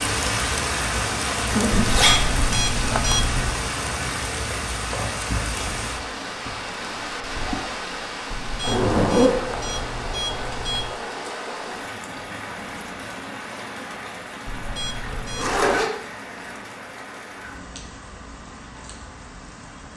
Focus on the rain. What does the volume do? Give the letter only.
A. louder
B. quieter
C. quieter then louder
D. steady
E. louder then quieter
B.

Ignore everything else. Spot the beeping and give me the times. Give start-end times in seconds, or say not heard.
1.9-3.5, 8.3-10.9, 14.4-15.8.